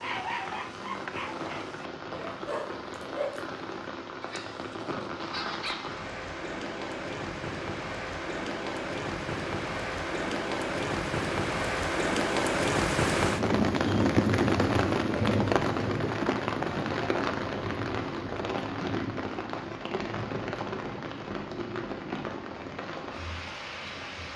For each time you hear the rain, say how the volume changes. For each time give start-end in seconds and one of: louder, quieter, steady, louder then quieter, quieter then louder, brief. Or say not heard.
0.0-24.3 louder then quieter.